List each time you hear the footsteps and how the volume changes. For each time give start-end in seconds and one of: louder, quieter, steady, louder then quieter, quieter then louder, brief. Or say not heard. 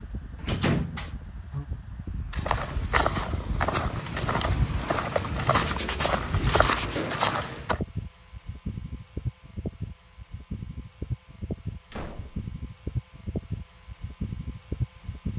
2.3-7.8 steady.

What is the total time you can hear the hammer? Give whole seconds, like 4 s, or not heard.
not heard.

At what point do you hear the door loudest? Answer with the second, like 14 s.
1 s.